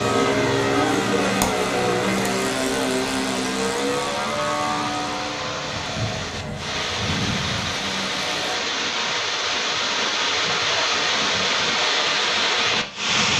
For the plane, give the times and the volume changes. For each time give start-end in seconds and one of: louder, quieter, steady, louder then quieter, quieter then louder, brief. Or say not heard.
0.0-8.6 quieter.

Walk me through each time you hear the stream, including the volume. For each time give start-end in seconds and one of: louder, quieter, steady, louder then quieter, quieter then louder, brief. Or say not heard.
0.0-13.3 louder.